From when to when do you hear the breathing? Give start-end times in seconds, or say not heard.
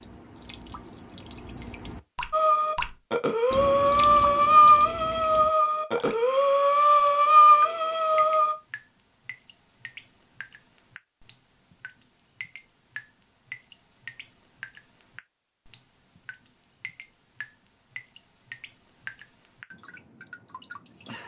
2.3-8.6.